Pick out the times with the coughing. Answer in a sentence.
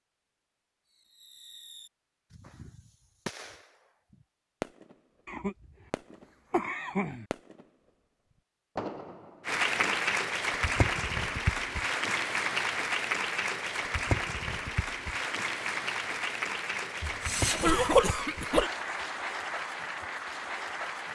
You can hear the coughing from 5.2 to 5.7 s, from 6.5 to 7.2 s and from 17.0 to 18.7 s.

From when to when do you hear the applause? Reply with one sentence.
You can hear the applause from 9.4 to 21.0 s.